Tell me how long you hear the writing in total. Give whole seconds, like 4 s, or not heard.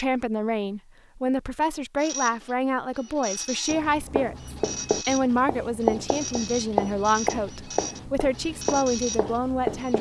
6 s.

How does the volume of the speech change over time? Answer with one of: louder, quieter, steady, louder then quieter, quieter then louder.
steady.